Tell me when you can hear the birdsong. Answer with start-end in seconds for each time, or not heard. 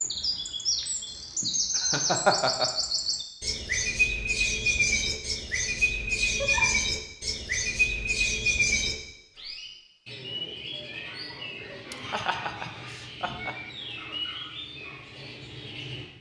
0.0-16.1.